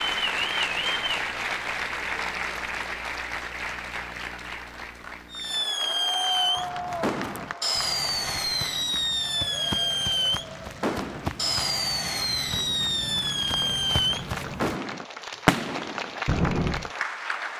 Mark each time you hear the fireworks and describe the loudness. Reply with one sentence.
You can hear the fireworks from 5.3 to 16.9 s, at a steady volume.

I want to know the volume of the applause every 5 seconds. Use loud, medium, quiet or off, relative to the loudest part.
loud, medium, medium, loud.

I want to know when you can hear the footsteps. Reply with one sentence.
You can hear the footsteps from 6.5 to 14.8 s.